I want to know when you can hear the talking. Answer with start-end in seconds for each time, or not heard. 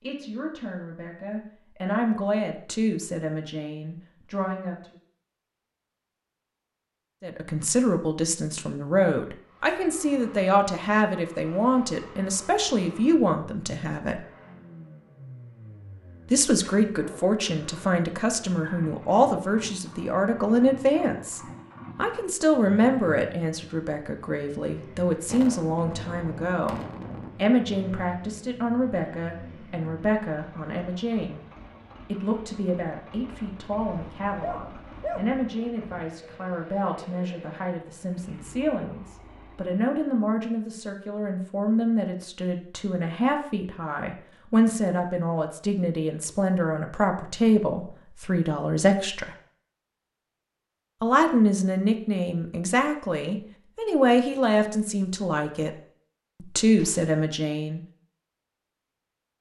0.0-5.0, 7.2-14.2, 16.3-31.4, 32.0-49.4, 51.0-55.7, 56.4-57.8.